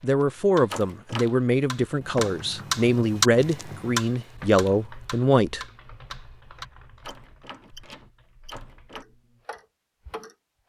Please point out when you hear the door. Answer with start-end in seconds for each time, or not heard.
0.7-1.4, 7.0-9.1.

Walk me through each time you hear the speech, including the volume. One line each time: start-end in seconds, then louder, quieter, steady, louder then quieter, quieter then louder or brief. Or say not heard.
0.0-5.7 steady.